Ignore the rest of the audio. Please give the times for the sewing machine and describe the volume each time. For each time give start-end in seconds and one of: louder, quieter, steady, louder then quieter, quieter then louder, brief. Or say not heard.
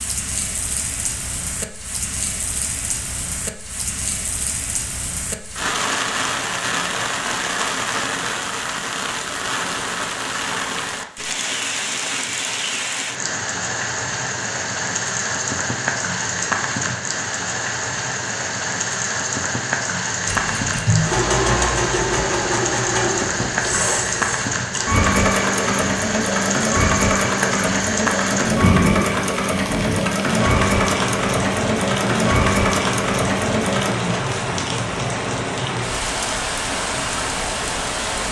20.2-34.0 steady.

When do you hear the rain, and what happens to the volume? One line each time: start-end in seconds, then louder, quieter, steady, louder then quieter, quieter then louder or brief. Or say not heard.
0.0-38.2 steady.